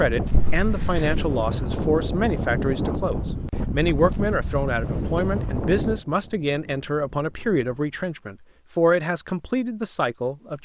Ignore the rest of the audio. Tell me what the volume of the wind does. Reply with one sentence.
The loudness of the wind goes down.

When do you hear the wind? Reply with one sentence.
The wind can be heard from 0.0 to 8.2 s.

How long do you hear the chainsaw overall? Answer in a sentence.
You can't hear the chainsaw here.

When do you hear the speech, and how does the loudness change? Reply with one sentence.
The speech can be heard from 0.0 to 10.6 s, at a steady volume.